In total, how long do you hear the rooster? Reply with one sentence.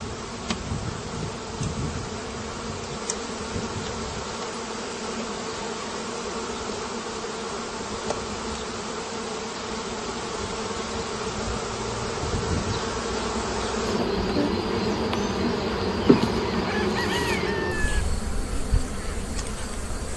The rooster can be heard for 2 seconds in total.